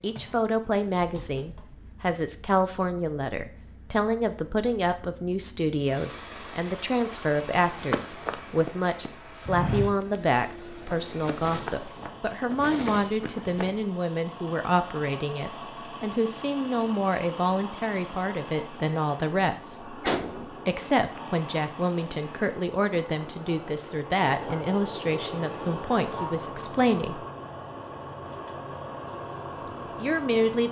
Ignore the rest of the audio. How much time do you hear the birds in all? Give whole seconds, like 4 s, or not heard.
not heard.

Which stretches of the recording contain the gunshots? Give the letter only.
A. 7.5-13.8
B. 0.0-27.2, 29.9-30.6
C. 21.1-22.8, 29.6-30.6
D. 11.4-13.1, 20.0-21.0
D.